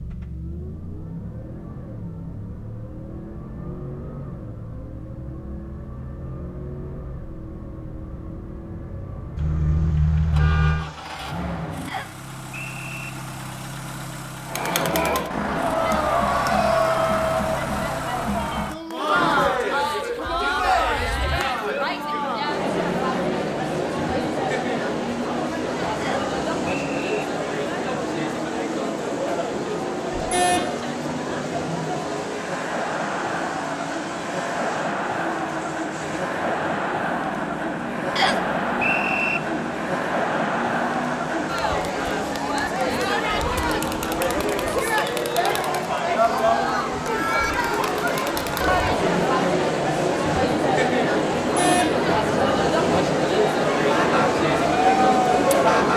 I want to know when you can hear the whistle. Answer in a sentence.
You can hear the whistle from 11.8 to 13.1 s, from 26.0 to 27.1 s and from 38.1 to 39.4 s.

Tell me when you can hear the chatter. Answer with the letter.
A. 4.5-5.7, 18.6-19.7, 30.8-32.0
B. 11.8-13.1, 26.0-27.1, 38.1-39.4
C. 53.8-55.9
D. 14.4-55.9
D.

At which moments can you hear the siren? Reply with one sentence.
You can hear the siren from 53.8 to 55.9 s.